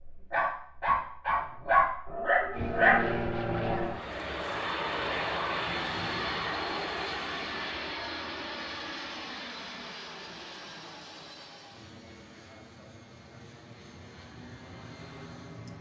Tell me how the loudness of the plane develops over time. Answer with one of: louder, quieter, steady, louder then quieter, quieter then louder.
quieter.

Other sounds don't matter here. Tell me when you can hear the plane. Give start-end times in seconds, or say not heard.
2.5-15.7.